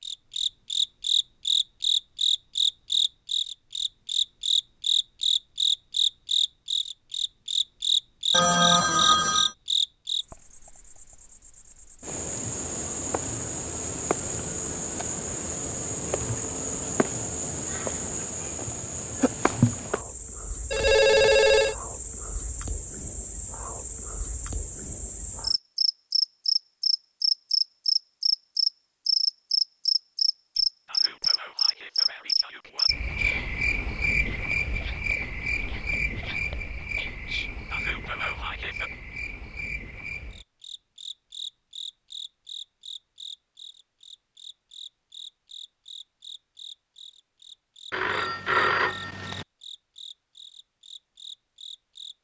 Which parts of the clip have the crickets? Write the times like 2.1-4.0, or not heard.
0.0-52.1.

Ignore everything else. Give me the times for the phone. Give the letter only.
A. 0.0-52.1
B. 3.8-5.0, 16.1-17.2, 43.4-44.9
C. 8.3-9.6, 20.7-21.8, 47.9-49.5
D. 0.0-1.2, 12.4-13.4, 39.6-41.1
C.